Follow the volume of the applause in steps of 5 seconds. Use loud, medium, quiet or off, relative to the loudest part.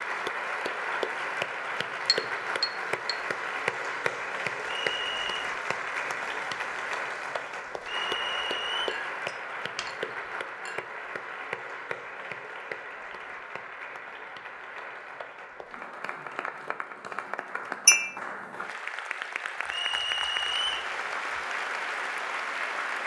loud, loud, medium, medium, loud.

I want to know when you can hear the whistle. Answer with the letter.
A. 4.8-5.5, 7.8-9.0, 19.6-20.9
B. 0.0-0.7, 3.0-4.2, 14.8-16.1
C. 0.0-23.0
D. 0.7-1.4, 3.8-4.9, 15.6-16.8
A.